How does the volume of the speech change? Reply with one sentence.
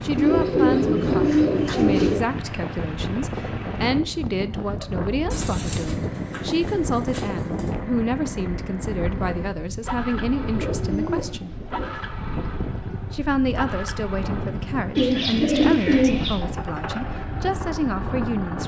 The loudness of the speech stays about the same.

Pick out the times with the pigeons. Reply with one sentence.
The pigeons can be heard from 0.1 to 2.2 s, from 5.3 to 7.7 s, from 10.4 to 11.9 s and from 14.9 to 16.4 s.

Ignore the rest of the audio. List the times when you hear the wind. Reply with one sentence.
You can hear the wind from 0.0 to 18.6 s.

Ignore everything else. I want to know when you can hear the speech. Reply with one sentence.
You can hear the speech from 0.0 to 11.5 s and from 13.1 to 18.6 s.